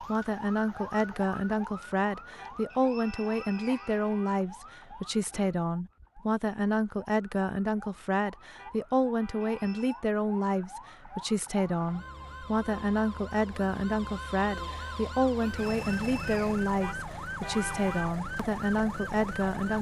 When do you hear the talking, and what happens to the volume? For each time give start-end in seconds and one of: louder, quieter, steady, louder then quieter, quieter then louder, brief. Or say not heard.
0.0-19.7 steady.